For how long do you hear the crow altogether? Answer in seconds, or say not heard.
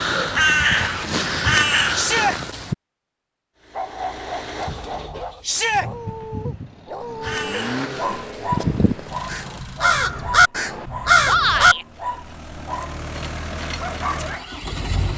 7 s.